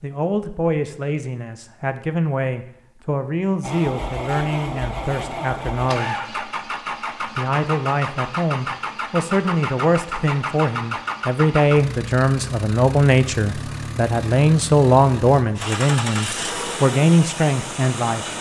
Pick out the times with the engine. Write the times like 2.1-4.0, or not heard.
3.6-18.3.